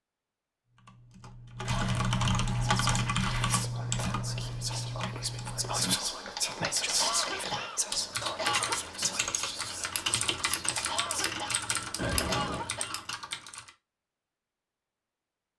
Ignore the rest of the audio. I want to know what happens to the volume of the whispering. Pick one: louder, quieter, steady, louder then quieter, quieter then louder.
louder then quieter.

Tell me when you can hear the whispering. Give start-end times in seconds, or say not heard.
2.5-11.4.